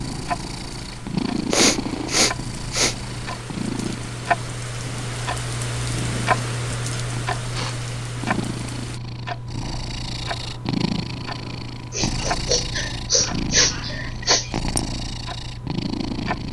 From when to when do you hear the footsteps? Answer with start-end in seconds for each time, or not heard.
not heard.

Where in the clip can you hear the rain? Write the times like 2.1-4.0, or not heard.
0.0-9.0.